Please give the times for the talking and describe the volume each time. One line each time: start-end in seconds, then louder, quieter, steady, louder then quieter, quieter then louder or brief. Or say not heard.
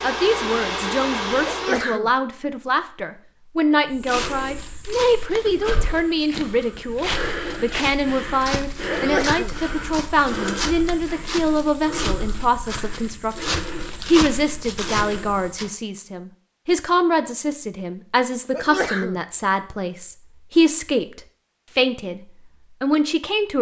0.0-23.5 steady.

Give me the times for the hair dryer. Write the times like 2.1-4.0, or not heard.
0.0-1.9.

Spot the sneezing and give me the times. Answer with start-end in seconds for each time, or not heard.
1.4-2.1, 8.9-9.6, 18.5-19.2.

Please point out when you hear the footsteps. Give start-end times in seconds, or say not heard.
3.9-15.7.